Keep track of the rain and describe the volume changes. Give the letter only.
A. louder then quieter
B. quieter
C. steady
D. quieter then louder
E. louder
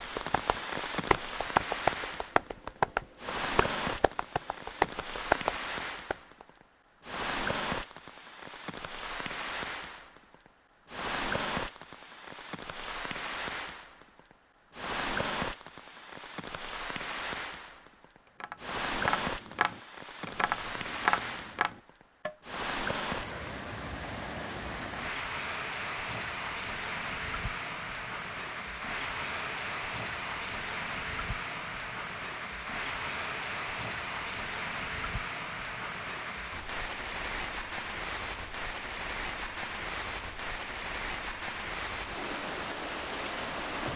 C.